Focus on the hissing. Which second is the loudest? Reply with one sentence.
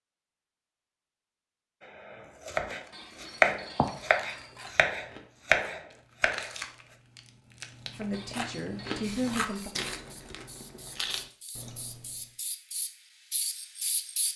The loudest moment of the hissing is at 14 seconds.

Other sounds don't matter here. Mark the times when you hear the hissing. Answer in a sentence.
You can hear the hissing from 8.8 to 14.3 s.